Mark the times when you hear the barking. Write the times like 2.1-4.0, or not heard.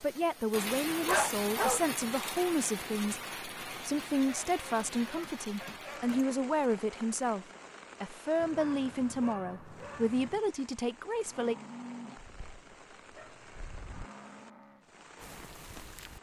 1.1-1.9, 4.2-6.2, 8.3-10.4, 12.2-14.1.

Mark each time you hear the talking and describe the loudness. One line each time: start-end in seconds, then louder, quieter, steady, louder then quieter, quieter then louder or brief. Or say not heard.
0.0-11.6 steady.